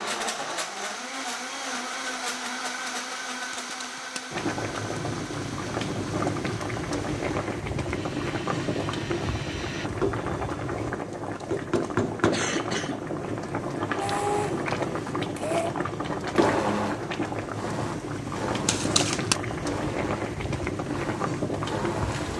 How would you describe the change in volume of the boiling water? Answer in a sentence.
The volume of the boiling water stays about the same.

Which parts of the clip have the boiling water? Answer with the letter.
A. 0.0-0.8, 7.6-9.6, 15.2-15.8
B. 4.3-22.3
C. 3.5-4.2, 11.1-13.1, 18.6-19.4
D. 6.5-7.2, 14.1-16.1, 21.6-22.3
B.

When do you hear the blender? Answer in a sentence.
The blender can be heard from 0.0 to 9.9 s and from 14.0 to 22.3 s.